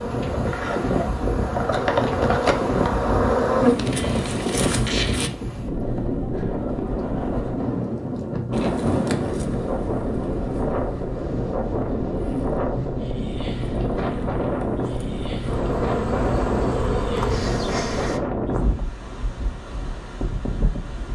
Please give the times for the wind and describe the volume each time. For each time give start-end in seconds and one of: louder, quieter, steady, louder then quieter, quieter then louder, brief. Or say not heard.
0.0-21.1 steady.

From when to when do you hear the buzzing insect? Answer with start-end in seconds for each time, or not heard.
0.0-5.3, 8.5-18.2.